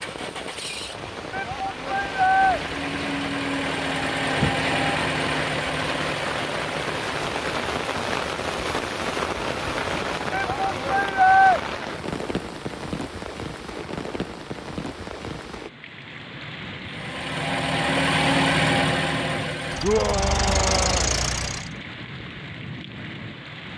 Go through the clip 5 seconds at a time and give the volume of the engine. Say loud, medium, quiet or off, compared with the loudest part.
medium, medium, off, loud, loud.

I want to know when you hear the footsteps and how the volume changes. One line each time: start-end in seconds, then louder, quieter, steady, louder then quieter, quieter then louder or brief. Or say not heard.
not heard.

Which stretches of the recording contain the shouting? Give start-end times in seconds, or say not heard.
1.3-2.6, 10.3-11.6, 19.8-21.1.